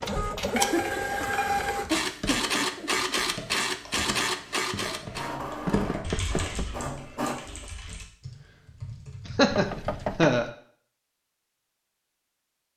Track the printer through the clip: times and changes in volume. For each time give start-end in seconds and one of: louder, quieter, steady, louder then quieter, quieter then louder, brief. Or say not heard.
0.0-7.7 quieter.